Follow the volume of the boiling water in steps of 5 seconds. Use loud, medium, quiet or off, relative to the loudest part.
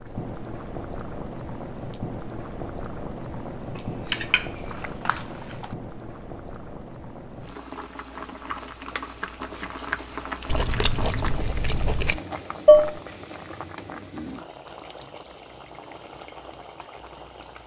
loud, loud, loud, medium.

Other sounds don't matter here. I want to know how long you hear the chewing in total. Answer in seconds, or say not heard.
2 s.